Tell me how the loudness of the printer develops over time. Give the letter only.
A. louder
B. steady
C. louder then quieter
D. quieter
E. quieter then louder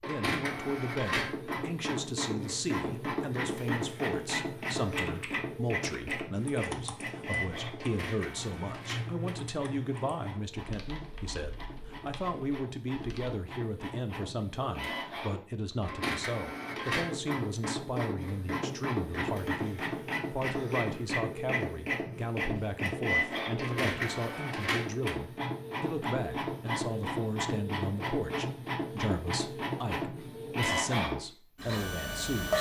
E.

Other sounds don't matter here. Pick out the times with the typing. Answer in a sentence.
The typing can be heard from 4.8 to 13.4 s.